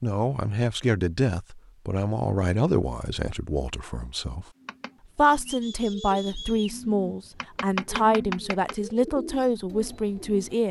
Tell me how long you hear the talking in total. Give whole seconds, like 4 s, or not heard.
10 s.